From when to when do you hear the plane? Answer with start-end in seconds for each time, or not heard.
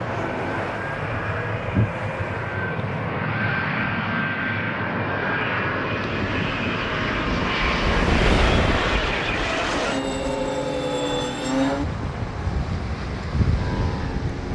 0.0-14.4.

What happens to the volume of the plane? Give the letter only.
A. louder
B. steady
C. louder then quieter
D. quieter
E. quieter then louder
B.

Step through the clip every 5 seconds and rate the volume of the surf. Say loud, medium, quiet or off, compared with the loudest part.
off, loud, medium.